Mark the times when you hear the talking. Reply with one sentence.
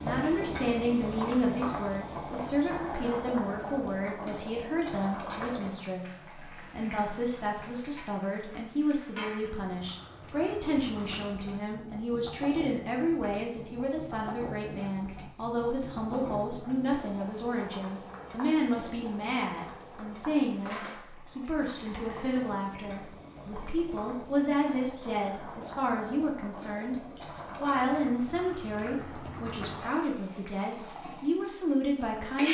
The talking can be heard from 0.0 to 26.9 s and from 27.6 to 32.4 s.